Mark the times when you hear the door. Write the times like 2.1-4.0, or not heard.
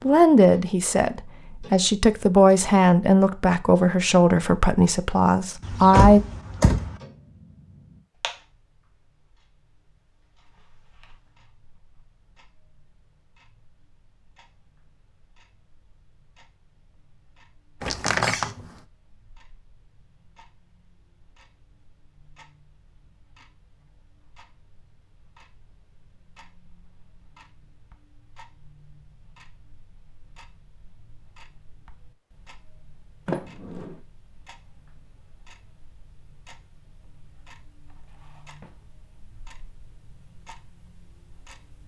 5.6-7.0, 17.8-18.6, 33.2-34.0.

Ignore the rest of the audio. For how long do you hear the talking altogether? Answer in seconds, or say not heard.
6 s.